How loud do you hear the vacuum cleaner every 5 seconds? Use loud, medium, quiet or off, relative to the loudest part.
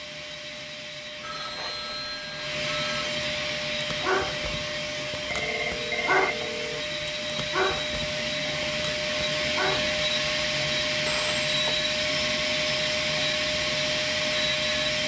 medium, loud, loud.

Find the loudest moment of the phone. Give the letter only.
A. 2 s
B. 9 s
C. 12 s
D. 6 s
D.